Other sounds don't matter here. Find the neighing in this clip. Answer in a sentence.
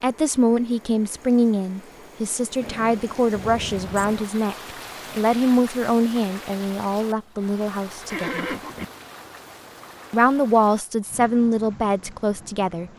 The neighing can be heard from 2.6 to 4.3 s and from 8.1 to 8.8 s.